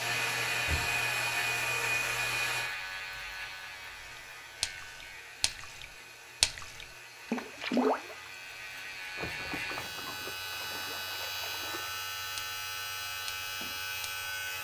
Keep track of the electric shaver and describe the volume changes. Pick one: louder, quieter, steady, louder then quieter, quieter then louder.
quieter then louder.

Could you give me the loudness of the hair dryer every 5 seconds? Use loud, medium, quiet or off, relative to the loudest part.
loud, quiet, quiet.